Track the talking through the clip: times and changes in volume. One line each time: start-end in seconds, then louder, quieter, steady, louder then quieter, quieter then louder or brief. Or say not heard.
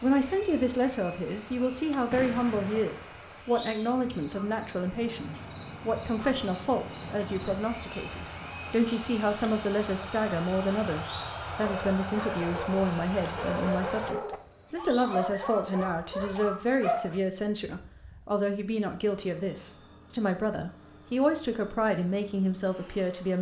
0.0-23.3 steady.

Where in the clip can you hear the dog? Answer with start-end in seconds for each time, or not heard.
11.6-17.2.